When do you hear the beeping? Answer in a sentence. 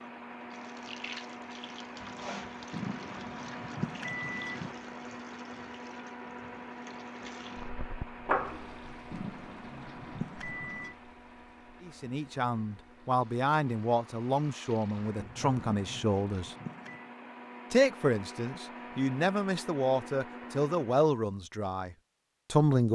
You can hear the beeping from 2.7 to 4.8 s, from 9.1 to 10.9 s and from 15.6 to 17.1 s.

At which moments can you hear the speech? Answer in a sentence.
The speech can be heard from 11.8 to 16.6 s and from 17.7 to 22.8 s.